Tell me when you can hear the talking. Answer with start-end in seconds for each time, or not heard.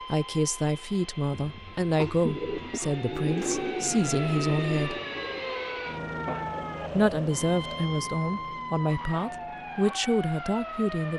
0.1-5.0, 7.0-11.1.